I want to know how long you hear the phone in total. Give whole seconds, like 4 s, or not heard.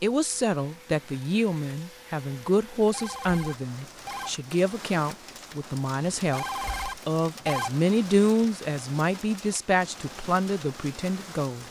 3 s.